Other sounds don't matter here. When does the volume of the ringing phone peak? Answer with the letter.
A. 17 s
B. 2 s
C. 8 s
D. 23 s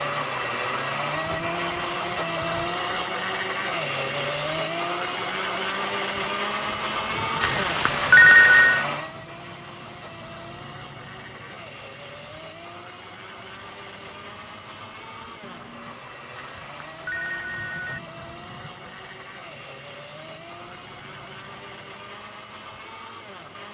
C.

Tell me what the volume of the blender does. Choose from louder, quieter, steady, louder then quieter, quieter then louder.
quieter.